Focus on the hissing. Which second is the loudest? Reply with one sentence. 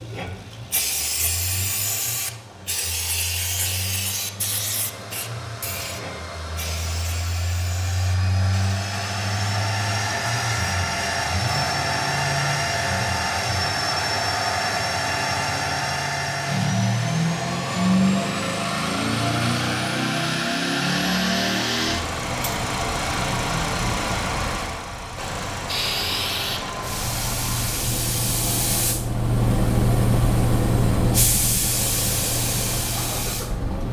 The volume of the hissing peaks at 30 seconds.